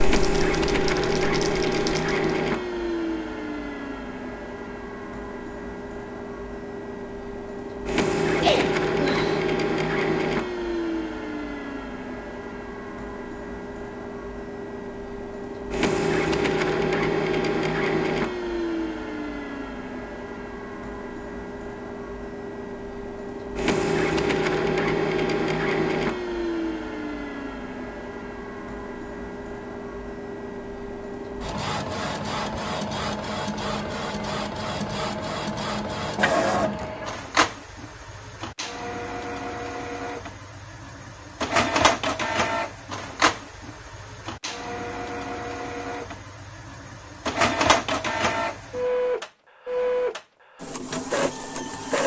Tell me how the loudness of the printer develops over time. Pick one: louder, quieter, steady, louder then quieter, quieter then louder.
steady.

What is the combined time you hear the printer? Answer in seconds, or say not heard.
52 s.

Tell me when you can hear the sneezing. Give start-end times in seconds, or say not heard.
8.3-9.4.